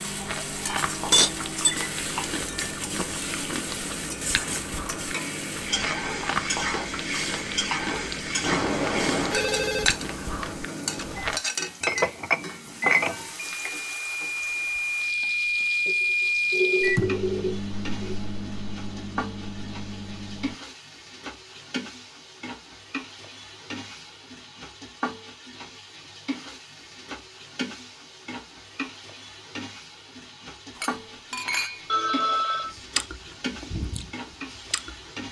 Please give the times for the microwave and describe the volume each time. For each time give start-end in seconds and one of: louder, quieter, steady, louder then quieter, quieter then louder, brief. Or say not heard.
0.0-20.6 louder.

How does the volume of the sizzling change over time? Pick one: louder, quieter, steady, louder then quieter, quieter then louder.
quieter.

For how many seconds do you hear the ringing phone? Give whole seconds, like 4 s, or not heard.
5 s.